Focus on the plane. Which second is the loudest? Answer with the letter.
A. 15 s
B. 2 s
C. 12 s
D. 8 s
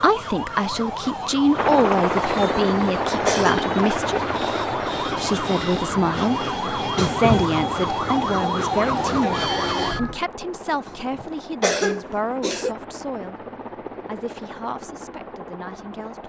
B.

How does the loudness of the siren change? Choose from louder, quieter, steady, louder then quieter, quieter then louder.
louder.